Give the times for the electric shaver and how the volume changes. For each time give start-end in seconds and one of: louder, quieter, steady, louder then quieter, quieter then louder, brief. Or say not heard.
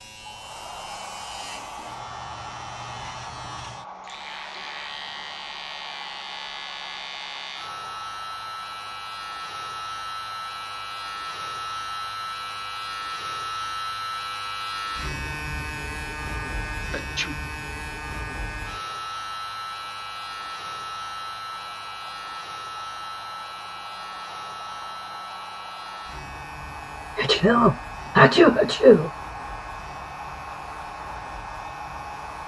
0.0-32.4 louder then quieter.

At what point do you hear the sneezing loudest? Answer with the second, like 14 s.
28 s.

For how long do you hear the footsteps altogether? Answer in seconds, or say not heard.
not heard.